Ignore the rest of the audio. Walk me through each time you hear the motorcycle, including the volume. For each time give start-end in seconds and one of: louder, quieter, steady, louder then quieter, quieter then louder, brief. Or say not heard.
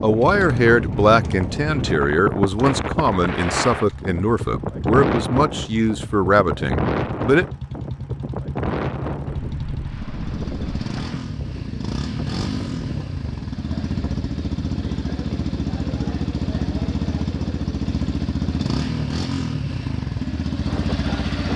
0.0-21.5 louder.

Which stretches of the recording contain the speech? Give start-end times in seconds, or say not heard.
0.0-7.5.